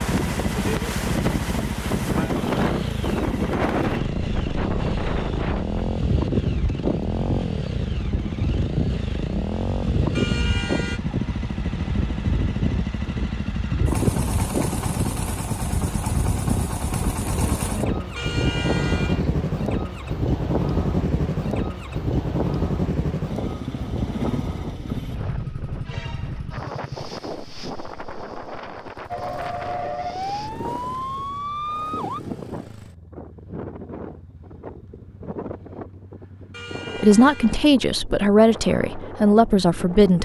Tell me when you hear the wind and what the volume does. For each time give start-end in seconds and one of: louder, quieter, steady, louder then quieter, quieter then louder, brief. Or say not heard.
0.0-40.2 quieter.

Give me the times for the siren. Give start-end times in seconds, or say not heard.
29.1-32.2.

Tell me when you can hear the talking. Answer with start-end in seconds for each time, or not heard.
37.0-40.2.